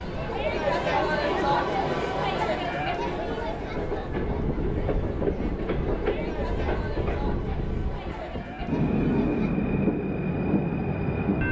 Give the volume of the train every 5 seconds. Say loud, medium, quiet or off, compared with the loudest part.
medium, loud, loud.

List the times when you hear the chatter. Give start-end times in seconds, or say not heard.
0.0-9.6.